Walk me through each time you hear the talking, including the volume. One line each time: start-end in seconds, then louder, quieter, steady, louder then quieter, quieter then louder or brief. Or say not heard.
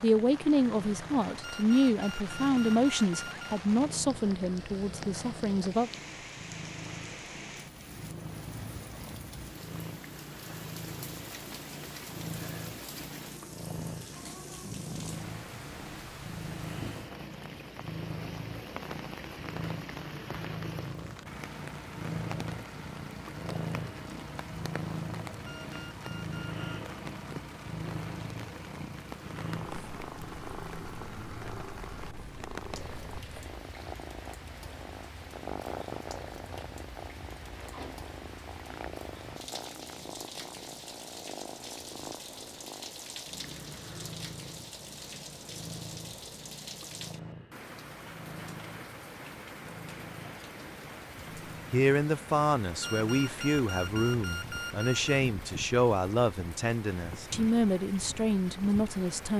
0.0-5.9 quieter
51.7-59.3 steady.